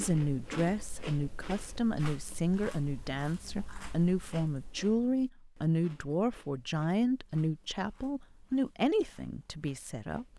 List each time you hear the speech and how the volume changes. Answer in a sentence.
You can hear the speech from 0.0 to 10.3 s, at a steady volume.